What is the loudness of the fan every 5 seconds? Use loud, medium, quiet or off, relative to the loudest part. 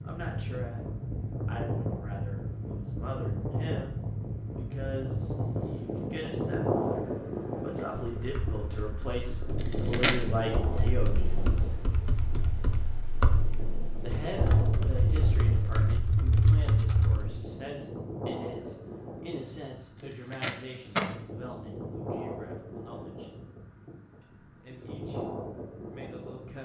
loud, loud, medium, medium, medium, medium.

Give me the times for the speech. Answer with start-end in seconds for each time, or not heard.
0.0-0.8, 1.4-11.7, 14.0-23.3, 24.2-26.6.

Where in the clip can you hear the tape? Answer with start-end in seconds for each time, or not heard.
9.6-10.2, 20.0-21.1.